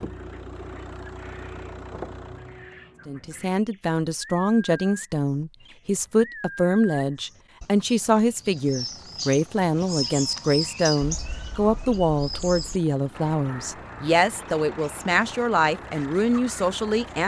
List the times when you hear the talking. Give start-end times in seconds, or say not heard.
3.0-17.2.